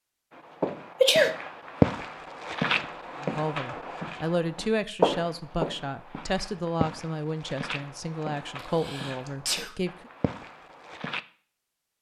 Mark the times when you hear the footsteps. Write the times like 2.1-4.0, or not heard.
0.3-11.2.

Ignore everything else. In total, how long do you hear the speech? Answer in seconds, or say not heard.
7 s.